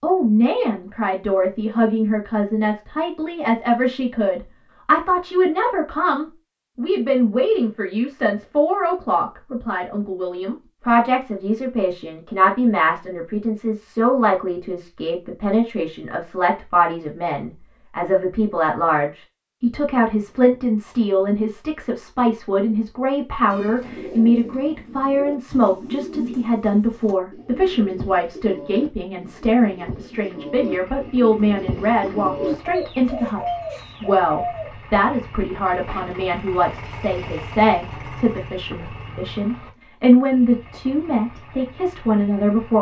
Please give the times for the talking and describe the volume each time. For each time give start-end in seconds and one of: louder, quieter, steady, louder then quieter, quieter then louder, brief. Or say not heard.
0.0-42.7 steady.